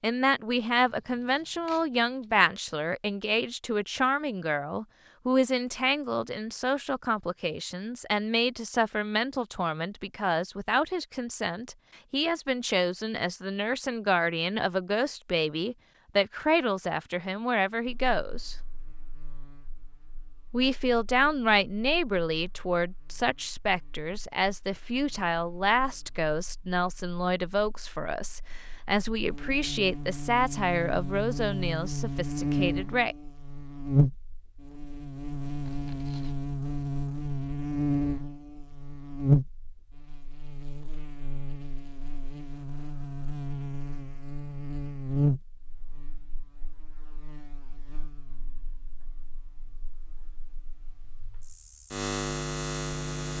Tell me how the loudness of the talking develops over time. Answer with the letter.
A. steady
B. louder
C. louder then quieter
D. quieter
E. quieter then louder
A.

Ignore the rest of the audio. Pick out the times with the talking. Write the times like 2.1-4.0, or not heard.
0.0-18.6, 20.5-33.1.